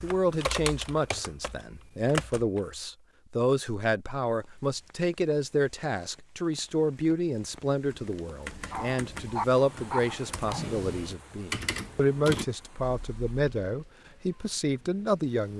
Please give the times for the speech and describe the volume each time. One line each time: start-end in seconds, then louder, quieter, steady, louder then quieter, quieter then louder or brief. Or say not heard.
0.0-15.5 steady.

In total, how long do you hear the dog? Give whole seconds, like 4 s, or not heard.
2 s.